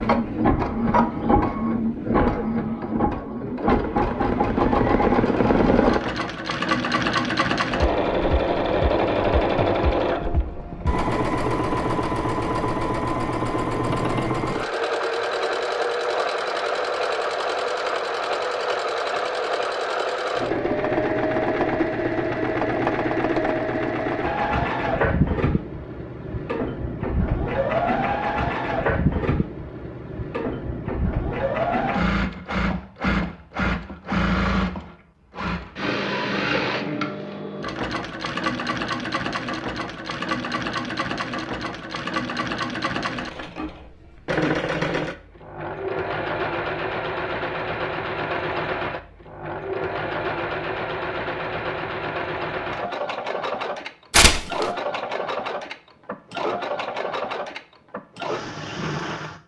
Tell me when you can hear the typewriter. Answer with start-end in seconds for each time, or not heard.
not heard.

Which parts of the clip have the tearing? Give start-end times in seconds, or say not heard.
54.1-54.6.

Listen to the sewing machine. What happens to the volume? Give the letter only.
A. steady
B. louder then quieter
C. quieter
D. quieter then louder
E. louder
C.